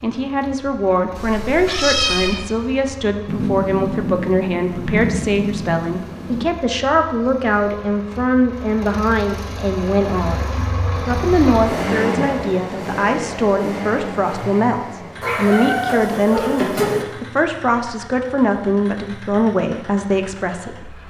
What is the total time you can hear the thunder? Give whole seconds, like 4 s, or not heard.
3 s.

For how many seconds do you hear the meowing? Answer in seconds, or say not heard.
3 s.